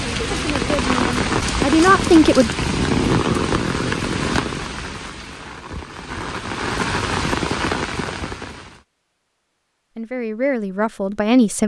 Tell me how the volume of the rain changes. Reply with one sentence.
The volume of the rain goes down, then up.